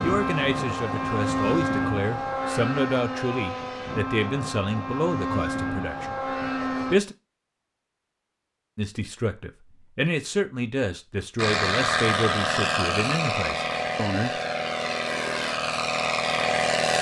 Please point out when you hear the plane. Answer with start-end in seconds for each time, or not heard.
0.0-7.0, 11.3-16.9.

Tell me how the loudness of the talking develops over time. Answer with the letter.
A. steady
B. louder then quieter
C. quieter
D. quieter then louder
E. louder
A.